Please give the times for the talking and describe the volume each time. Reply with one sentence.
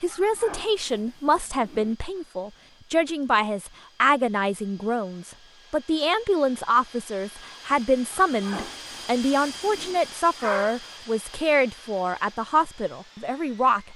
You can hear the talking from 0.0 to 13.9 s, at a steady volume.